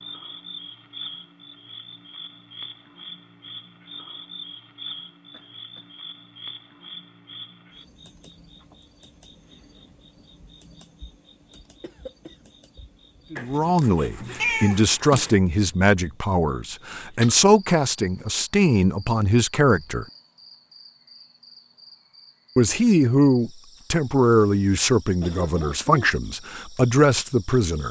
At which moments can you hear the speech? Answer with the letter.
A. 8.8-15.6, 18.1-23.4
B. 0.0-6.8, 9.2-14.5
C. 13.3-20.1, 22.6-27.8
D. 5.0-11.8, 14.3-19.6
C.